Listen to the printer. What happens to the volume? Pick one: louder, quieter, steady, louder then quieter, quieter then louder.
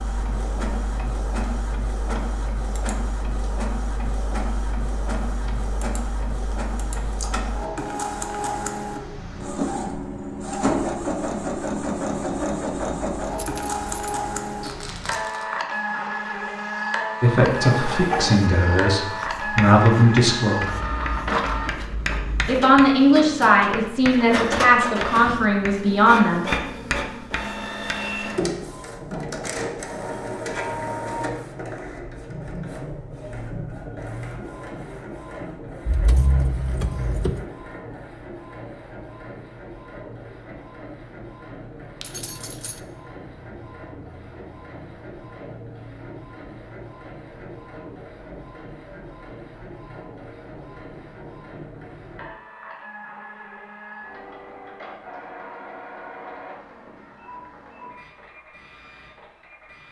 quieter.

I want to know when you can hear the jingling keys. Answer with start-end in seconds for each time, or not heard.
13.3-14.2, 35.9-37.5, 42.0-42.8.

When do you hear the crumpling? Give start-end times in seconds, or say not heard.
14.6-15.4.